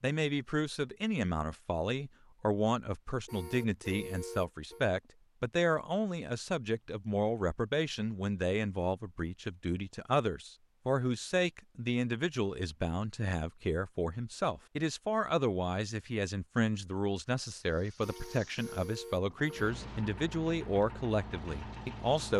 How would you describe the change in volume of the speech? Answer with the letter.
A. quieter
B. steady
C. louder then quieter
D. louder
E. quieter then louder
B.